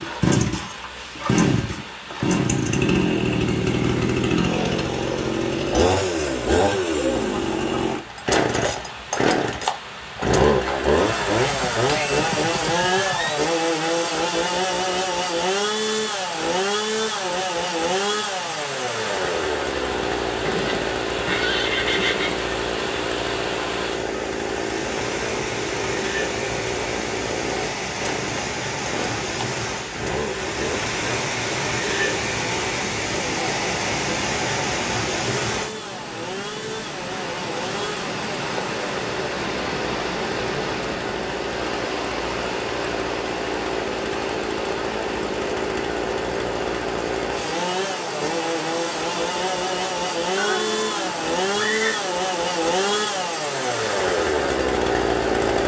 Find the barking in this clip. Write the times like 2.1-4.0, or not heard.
not heard.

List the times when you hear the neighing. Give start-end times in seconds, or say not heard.
11.1-13.4, 20.4-22.4, 50.4-52.0.